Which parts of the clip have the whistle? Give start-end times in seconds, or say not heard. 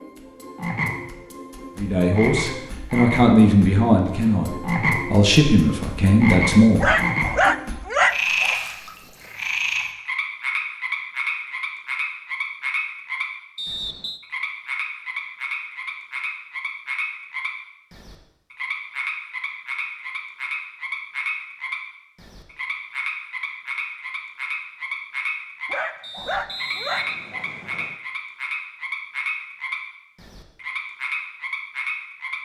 13.6-14.2, 26.0-28.0.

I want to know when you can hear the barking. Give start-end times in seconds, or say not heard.
6.8-8.6, 25.7-27.4.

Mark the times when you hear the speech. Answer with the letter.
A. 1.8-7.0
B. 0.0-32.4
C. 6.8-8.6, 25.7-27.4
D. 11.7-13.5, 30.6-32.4
A.